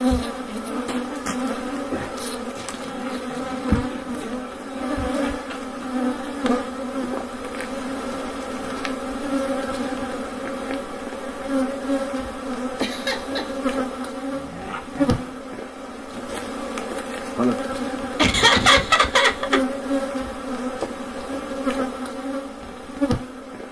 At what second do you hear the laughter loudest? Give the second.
19 s.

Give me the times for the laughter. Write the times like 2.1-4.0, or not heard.
3.9-5.8, 12.8-13.6, 18.1-19.6.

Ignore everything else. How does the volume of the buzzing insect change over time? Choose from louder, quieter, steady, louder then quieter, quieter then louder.
steady.